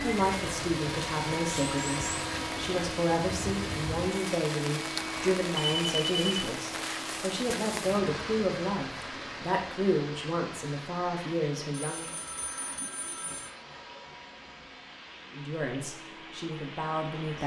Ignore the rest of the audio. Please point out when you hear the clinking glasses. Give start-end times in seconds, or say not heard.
not heard.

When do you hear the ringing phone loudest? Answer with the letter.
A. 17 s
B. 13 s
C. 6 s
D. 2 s
C.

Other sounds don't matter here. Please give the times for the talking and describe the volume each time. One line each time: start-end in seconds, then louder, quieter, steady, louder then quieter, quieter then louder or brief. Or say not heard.
0.0-12.2 steady
15.3-17.4 brief.